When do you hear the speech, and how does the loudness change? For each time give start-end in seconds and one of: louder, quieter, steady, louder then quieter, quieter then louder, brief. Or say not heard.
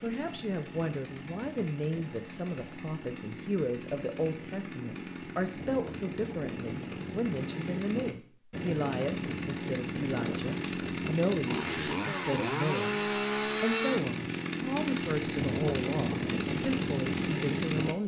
0.0-18.0 steady.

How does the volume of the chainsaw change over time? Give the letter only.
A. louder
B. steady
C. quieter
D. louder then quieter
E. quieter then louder
A.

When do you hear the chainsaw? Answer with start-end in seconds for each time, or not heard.
0.0-17.9.